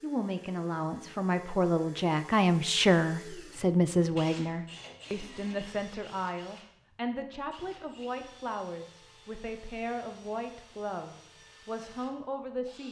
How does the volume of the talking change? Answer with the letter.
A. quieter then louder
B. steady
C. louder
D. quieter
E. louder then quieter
D.